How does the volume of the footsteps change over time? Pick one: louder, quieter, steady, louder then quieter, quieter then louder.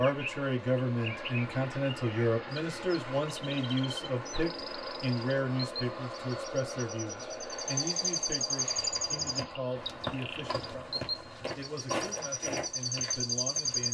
louder then quieter.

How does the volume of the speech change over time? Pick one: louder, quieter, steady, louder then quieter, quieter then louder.
quieter.